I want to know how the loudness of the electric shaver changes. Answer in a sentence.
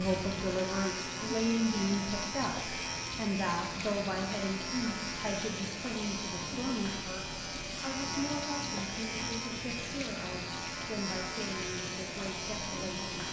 The loudness of the electric shaver stays about the same.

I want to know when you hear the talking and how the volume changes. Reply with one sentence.
You can hear the talking from 0.0 to 13.2 s, getting quieter.